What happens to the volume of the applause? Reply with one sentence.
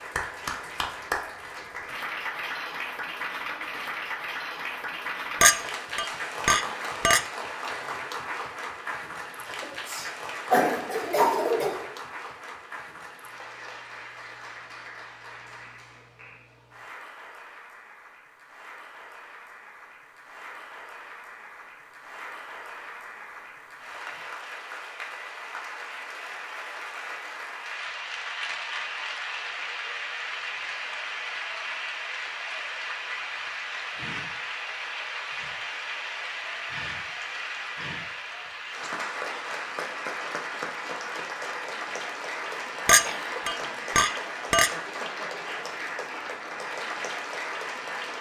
The volume of the applause goes down, then up.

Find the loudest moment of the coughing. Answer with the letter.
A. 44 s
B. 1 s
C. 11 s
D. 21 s
C.